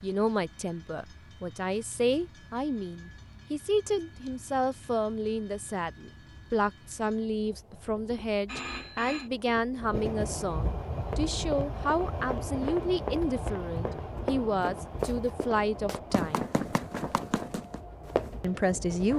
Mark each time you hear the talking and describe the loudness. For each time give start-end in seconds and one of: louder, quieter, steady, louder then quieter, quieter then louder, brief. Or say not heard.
0.0-16.5 steady
18.4-19.1 brief.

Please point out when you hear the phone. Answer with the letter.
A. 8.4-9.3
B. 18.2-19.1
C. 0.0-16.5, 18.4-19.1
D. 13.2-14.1
A.